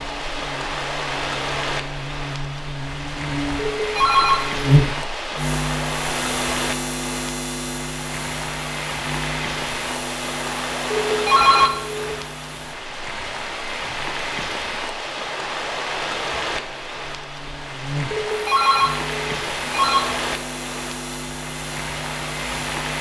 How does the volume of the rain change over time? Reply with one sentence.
The loudness of the rain stays about the same.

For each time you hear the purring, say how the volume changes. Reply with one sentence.
You can't hear the purring here.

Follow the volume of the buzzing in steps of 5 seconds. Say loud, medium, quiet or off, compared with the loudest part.
loud, loud, medium, medium, medium.